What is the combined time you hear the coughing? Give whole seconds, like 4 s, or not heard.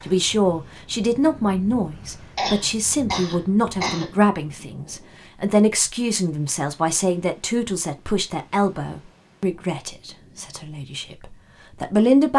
2 s.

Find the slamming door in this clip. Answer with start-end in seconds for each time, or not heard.
not heard.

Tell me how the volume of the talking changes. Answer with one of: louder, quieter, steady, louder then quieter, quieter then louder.
quieter.